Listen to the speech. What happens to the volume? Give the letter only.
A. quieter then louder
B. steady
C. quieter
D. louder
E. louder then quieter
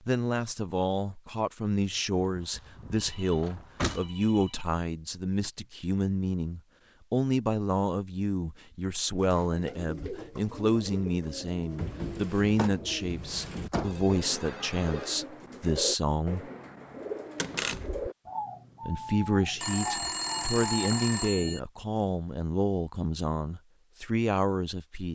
B.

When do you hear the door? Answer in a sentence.
You can hear the door from 2.1 to 4.0 s, from 12.6 to 14.1 s and from 17.4 to 18.1 s.